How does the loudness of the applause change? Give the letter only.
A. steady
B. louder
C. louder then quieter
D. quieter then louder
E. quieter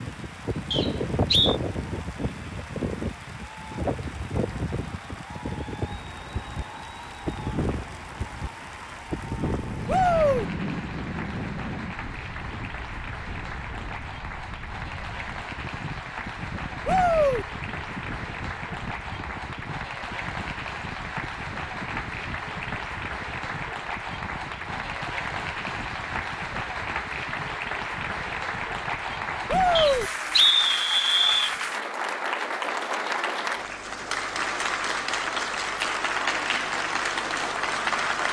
B.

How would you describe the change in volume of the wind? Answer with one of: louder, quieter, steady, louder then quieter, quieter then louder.
quieter.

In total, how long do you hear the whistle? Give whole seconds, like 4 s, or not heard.
3 s.